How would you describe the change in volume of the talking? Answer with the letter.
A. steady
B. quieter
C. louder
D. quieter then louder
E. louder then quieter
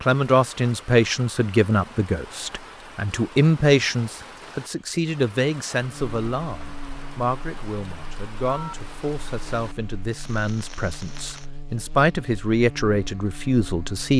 D.